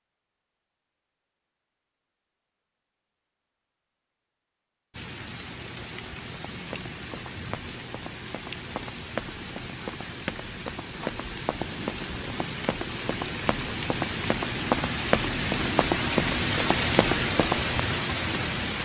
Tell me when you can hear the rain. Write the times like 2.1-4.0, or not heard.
4.9-18.8.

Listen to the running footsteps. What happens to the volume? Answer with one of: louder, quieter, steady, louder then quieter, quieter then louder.
louder.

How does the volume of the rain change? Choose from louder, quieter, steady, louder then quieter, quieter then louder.
louder.